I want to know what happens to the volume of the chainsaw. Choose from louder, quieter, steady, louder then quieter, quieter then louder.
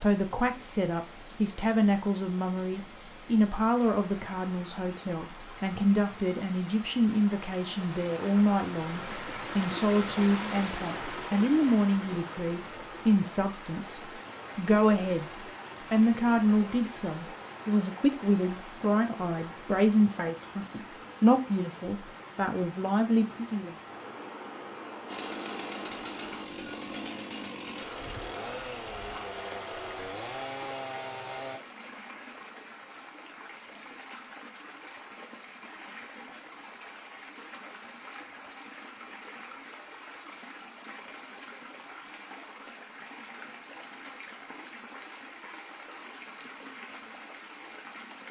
steady.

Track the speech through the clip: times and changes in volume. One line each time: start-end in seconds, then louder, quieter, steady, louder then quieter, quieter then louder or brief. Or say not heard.
0.0-15.3 steady
15.9-23.8 steady.